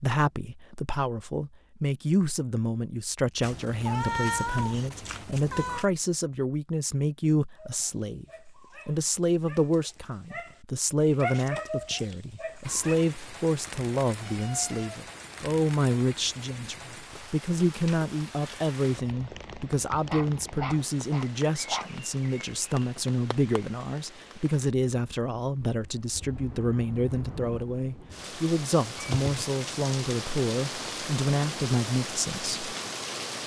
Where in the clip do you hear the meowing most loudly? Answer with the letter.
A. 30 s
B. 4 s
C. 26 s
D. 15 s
B.